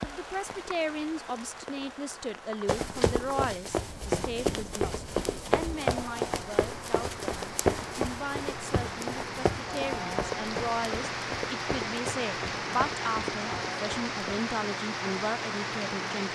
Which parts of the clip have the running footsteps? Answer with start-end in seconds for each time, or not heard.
2.6-14.4.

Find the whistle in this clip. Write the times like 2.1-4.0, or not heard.
not heard.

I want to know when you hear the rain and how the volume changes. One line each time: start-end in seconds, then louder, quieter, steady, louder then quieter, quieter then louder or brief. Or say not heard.
0.0-16.3 louder.